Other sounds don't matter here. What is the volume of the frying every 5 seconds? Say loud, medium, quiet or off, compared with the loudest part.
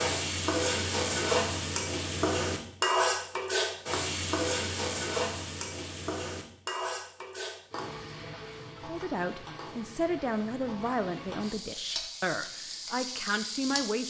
loud, medium, medium.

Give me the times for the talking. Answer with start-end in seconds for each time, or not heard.
8.8-14.0.